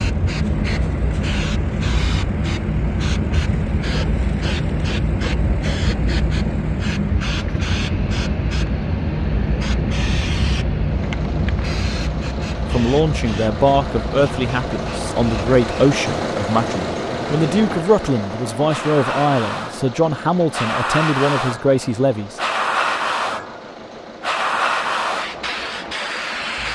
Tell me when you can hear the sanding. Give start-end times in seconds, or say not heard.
not heard.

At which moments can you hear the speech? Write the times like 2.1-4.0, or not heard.
12.7-22.4.